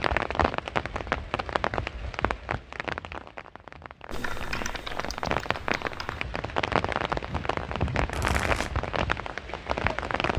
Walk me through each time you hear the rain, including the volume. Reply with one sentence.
The rain can be heard from 0.0 to 10.3 s, getting quieter then louder.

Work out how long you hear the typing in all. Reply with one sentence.
You can hear the typing for 2 seconds altogether.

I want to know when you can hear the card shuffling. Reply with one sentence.
You can hear the card shuffling from 8.1 to 8.8 s.